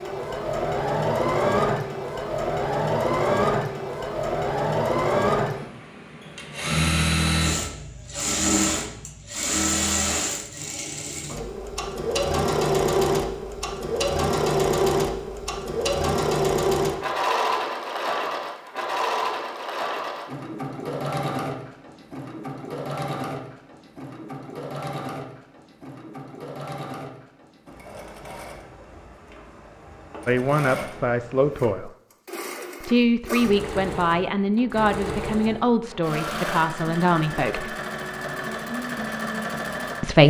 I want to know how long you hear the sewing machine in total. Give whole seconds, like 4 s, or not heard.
40 s.